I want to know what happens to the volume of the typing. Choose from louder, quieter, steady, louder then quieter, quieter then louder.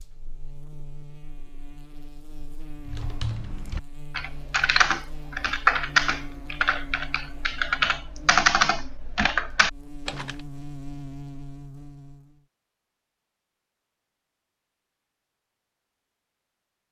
louder.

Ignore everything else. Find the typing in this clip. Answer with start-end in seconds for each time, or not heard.
2.9-10.3.